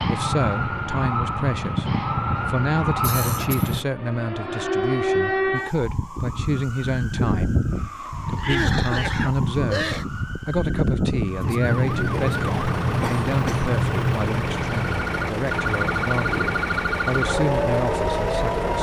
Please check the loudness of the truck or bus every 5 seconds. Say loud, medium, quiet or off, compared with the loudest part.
off, off, loud, loud.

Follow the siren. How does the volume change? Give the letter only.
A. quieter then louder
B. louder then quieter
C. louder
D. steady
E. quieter
D.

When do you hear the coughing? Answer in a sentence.
You can hear the coughing from 3.0 to 3.8 s, from 8.3 to 10.1 s and from 13.0 to 13.7 s.